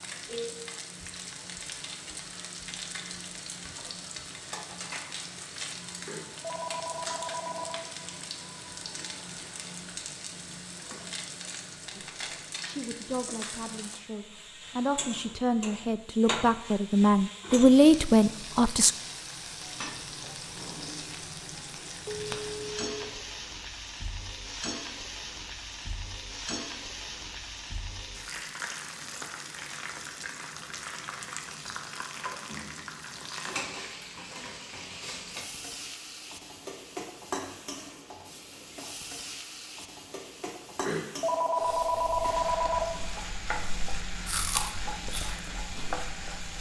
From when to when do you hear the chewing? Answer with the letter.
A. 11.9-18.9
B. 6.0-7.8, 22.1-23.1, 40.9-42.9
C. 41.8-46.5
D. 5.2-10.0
C.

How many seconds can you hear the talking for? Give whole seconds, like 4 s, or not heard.
7 s.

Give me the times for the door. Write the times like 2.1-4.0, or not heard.
not heard.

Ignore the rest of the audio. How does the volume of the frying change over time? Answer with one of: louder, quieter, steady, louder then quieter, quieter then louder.
steady.